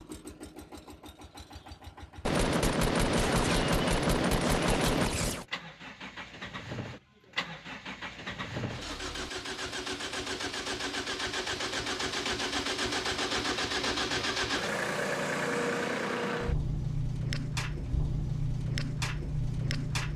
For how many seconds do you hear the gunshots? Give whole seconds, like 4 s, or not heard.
3 s.